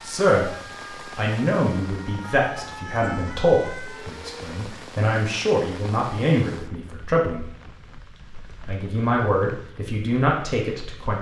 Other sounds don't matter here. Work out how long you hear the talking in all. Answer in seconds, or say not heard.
10 s.